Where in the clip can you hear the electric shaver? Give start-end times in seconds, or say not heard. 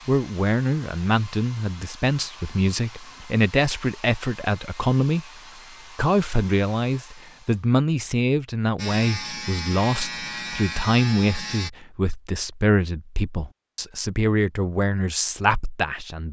8.8-11.7.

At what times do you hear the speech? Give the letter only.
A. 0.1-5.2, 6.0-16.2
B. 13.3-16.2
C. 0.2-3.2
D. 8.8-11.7
A.